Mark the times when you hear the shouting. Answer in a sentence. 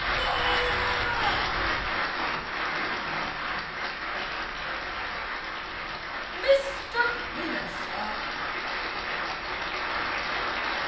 The shouting can be heard from 0.1 to 1.5 s and from 6.3 to 8.2 s.